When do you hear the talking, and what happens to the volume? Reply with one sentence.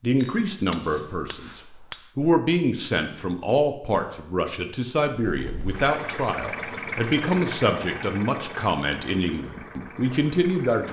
The talking can be heard from 0.0 to 10.8 s, at a steady volume.